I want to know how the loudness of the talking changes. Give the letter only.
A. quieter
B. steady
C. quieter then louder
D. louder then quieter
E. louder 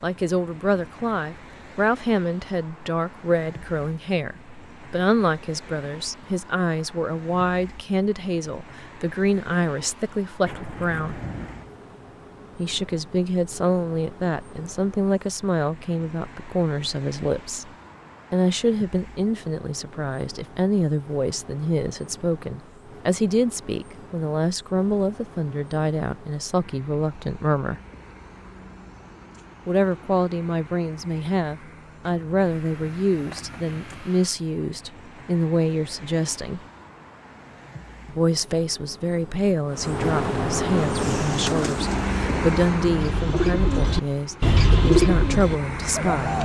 B.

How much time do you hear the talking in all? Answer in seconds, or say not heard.
41 s.